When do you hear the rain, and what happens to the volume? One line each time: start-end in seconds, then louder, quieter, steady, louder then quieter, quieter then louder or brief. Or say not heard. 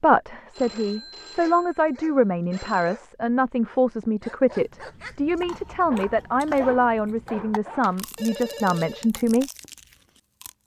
not heard.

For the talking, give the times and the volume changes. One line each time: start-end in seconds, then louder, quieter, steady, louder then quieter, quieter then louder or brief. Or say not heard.
0.0-9.5 steady.